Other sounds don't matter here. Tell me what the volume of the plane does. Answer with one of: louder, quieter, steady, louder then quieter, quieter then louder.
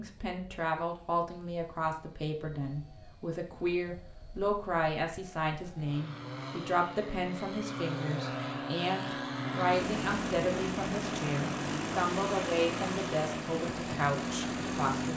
louder.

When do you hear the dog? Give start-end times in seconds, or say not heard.
not heard.